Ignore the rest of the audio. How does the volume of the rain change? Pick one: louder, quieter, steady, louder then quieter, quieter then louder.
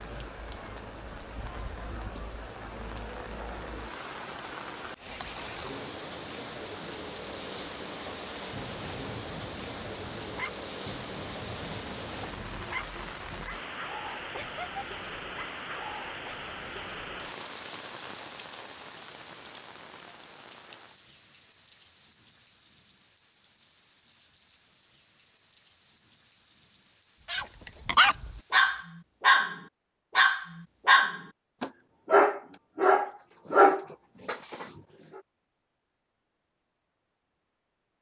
quieter.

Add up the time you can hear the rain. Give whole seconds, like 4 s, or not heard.
29 s.